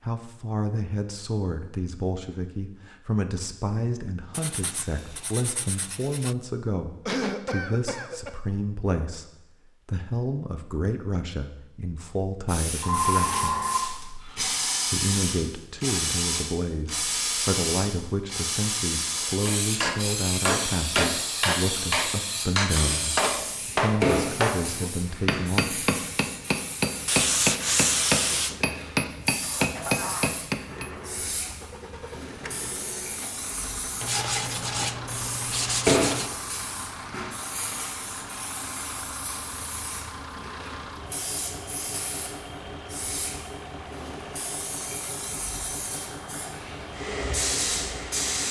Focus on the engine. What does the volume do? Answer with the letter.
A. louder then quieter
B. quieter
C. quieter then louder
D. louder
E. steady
E.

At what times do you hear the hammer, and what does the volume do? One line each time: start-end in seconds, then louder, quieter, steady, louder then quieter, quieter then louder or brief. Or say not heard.
19.4-30.9 steady.